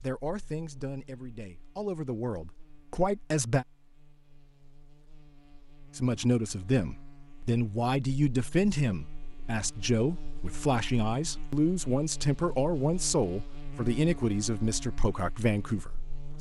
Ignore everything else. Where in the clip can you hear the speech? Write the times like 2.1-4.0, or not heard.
0.0-3.6, 6.0-16.3.